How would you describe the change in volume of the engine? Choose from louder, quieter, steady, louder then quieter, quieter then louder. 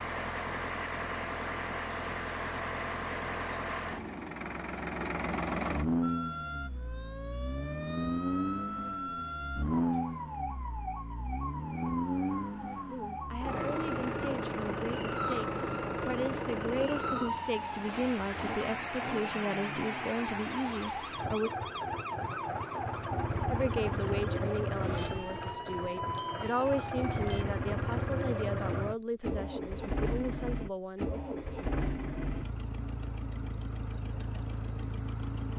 steady.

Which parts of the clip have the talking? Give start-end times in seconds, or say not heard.
12.8-21.5, 23.5-31.1.